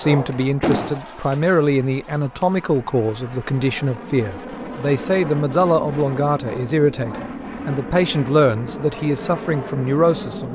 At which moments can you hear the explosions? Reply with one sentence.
You can hear the explosions from 0.6 to 1.0 s.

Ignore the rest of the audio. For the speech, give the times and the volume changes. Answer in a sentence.
The speech can be heard from 0.0 to 10.5 s, at a steady volume.